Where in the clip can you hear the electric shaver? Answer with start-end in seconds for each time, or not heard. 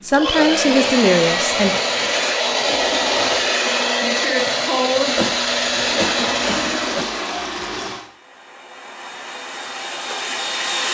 not heard.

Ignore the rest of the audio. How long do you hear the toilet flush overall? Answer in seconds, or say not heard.
3 s.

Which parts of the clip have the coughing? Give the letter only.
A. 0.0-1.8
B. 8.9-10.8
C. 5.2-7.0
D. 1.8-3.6
C.